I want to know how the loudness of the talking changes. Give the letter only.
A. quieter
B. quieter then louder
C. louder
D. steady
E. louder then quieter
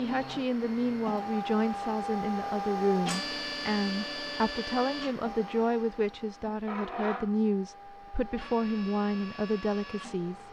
D.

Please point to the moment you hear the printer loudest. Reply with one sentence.
The loudest moment of the printer is at 3 seconds.